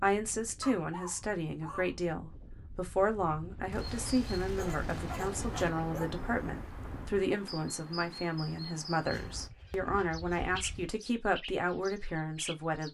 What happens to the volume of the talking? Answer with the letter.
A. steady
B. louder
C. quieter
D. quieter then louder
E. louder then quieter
A.